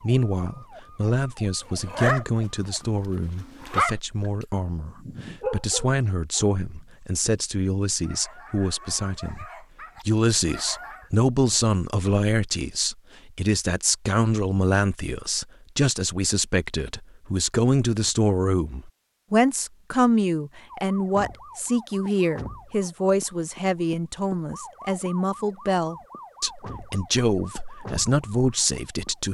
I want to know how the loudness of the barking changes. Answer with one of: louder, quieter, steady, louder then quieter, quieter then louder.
quieter.